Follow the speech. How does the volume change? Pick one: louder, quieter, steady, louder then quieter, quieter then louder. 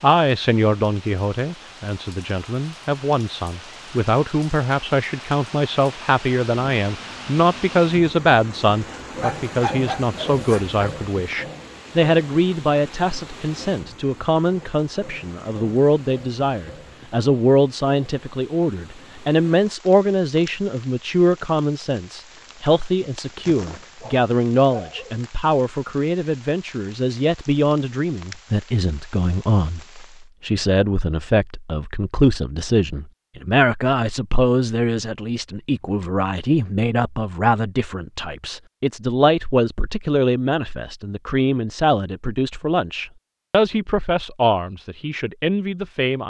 steady.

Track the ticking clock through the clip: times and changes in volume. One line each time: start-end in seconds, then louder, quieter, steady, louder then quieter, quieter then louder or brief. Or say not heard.
not heard.